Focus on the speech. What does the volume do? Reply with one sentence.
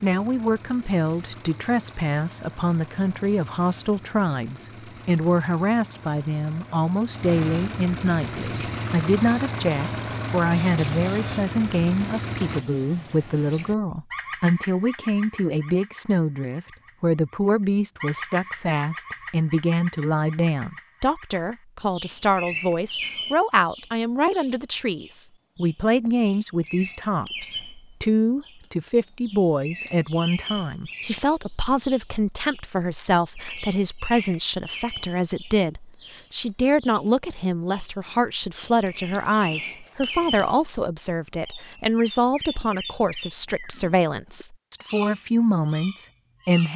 The volume of the speech stays about the same.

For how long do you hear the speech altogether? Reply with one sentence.
You can hear the speech for 47 seconds altogether.